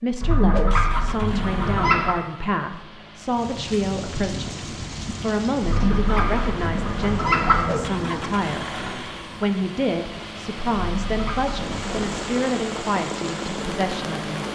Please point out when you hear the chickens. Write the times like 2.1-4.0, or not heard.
0.2-2.1, 5.6-7.7, 10.7-12.2.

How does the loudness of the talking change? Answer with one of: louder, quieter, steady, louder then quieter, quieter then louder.
steady.